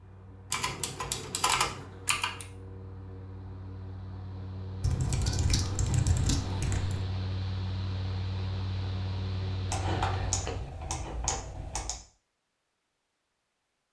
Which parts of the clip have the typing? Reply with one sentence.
The typing can be heard from 0.5 to 2.5 s, from 4.8 to 7.0 s and from 9.7 to 12.0 s.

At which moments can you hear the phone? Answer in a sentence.
The phone can't be heard in this clip.